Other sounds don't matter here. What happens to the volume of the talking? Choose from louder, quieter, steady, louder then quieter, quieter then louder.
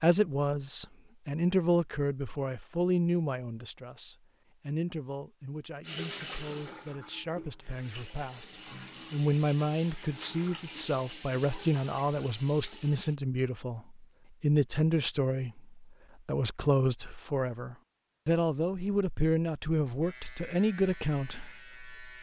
quieter then louder.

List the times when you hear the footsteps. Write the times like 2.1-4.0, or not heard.
not heard.